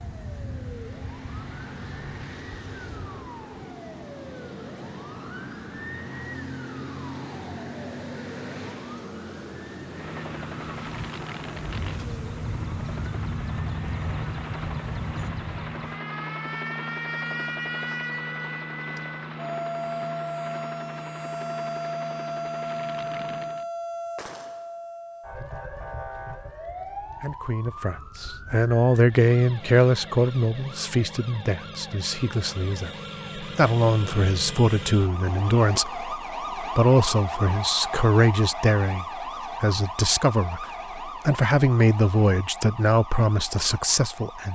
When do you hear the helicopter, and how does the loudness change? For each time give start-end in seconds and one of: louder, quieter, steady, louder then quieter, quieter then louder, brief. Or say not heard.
9.8-23.6 steady.